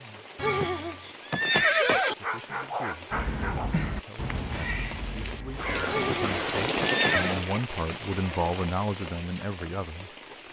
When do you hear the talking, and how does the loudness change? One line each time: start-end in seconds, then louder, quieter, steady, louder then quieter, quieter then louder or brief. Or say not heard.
2.1-10.4 louder.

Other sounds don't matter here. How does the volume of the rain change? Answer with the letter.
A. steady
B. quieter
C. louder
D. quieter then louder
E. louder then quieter
E.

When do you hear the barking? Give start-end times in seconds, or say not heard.
2.2-3.7.